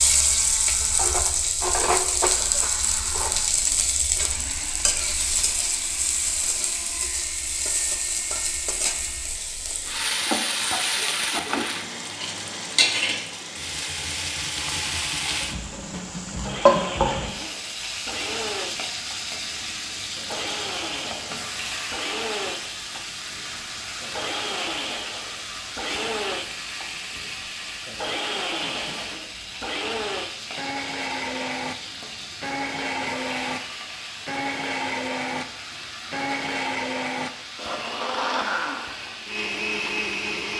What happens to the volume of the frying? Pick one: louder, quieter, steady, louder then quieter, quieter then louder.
quieter.